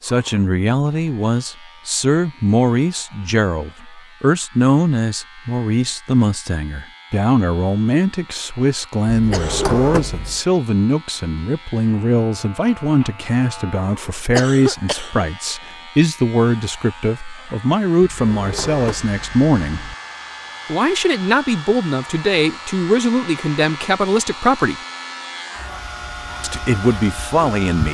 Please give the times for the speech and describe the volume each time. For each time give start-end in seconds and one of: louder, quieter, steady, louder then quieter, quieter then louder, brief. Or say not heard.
0.0-19.9 steady
20.6-24.8 steady
26.4-27.8 brief.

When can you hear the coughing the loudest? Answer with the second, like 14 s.
15 s.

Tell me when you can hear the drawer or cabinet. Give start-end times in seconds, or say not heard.
9.1-10.4, 18.0-19.9.